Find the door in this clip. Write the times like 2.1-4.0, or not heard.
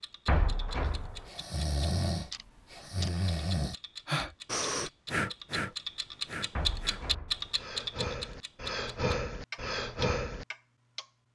0.2-1.3, 6.5-7.5.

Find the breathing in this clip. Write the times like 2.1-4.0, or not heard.
0.8-10.4.